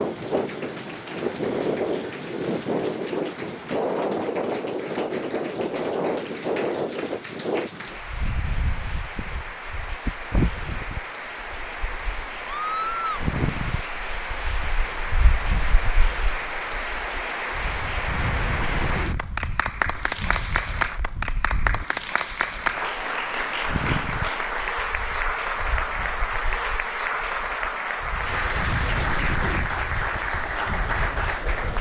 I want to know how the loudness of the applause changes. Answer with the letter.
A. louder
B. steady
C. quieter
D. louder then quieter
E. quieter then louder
A.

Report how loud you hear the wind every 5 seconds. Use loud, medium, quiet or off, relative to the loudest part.
loud, loud, medium, medium, medium, medium, quiet.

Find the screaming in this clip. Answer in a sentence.
You can hear the screaming from 12.5 to 13.2 s.